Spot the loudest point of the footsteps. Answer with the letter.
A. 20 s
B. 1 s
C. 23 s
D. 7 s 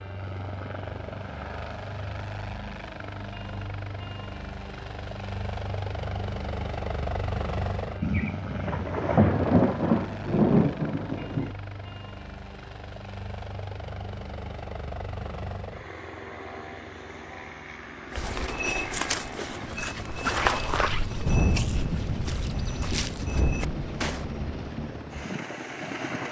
A.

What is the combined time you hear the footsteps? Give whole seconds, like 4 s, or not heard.
6 s.